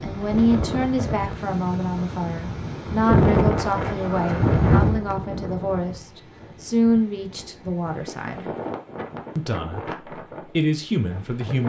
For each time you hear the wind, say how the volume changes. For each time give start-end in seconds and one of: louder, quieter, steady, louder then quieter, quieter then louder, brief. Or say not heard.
0.0-11.6 louder then quieter.